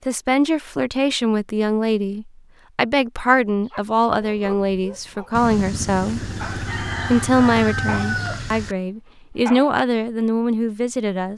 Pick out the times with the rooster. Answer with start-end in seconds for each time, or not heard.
5.3-8.8.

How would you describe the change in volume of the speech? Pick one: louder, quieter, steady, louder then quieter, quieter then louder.
steady.